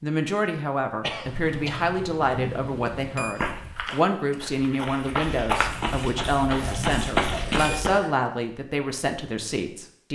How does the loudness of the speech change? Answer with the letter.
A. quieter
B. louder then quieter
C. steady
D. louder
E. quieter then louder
C.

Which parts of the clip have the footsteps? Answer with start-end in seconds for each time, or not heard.
3.4-7.9.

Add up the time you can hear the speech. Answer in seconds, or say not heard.
10 s.